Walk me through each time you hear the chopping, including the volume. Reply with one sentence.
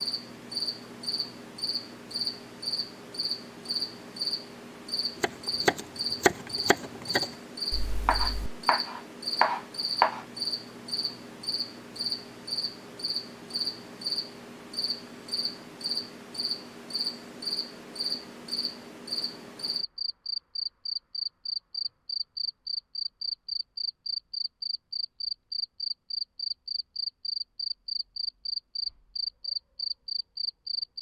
You can hear the chopping from 5.2 to 10.2 s, getting quieter then louder.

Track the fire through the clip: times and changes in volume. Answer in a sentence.
You can't hear the fire here.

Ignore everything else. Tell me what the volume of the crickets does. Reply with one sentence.
The loudness of the crickets stays about the same.